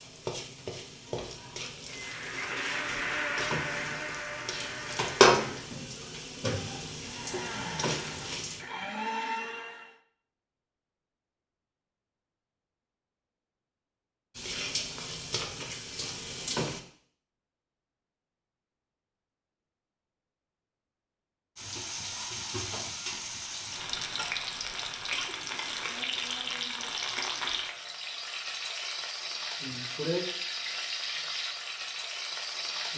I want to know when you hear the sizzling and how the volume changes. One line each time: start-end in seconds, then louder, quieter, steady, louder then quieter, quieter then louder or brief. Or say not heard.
0.0-8.7 louder then quieter
14.3-16.8 brief
21.6-32.9 steady.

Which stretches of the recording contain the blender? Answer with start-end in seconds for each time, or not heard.
1.9-5.8, 7.0-9.9.